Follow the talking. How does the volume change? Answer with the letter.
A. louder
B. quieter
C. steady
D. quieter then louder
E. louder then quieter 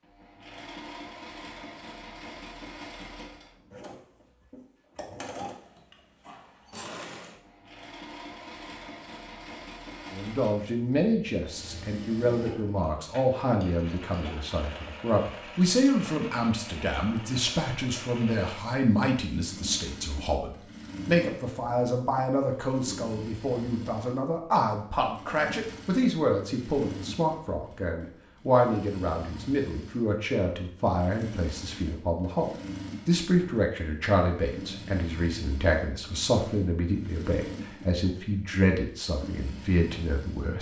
C.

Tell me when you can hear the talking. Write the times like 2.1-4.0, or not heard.
10.1-40.5.